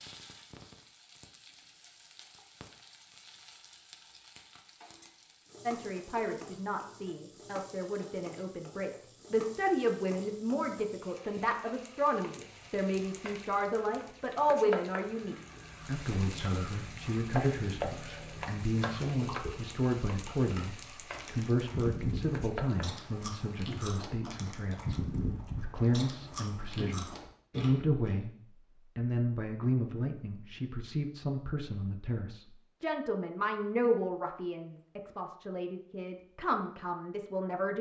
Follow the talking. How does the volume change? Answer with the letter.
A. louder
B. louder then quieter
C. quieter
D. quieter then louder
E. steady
E.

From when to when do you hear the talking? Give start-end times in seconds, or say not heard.
5.7-28.3, 28.9-37.7.